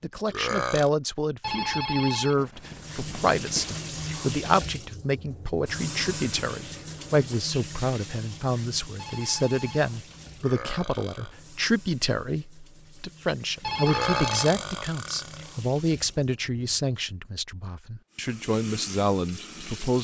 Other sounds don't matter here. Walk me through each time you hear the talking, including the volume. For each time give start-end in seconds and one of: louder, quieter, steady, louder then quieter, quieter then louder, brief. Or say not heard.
0.0-19.9 steady.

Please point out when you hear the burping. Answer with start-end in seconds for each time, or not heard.
0.3-0.9, 10.3-11.3, 13.8-15.6.